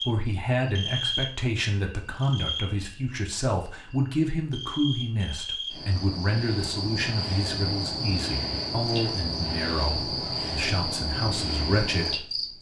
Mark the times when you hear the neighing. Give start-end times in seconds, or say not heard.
not heard.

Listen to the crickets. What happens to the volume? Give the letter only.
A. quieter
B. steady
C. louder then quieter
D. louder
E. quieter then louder
E.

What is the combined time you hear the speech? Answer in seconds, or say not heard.
12 s.